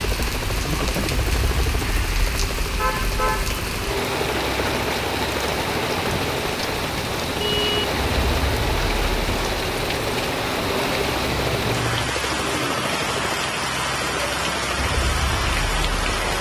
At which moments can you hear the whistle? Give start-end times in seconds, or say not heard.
not heard.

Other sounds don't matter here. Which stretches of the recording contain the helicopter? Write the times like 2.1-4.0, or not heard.
0.0-16.3.